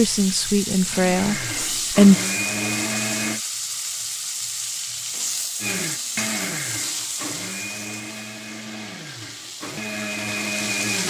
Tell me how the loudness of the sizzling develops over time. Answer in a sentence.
The volume of the sizzling goes down.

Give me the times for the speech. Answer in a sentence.
The speech can be heard from 0.0 to 2.1 s.